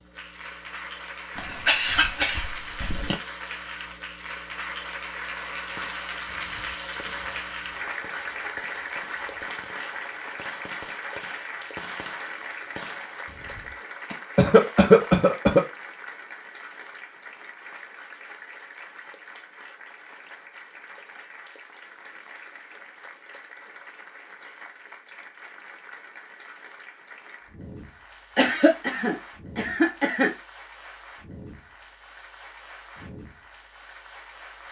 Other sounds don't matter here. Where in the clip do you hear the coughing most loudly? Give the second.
15 s.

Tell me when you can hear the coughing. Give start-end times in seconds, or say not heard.
1.4-3.1, 14.3-15.7, 28.4-30.3.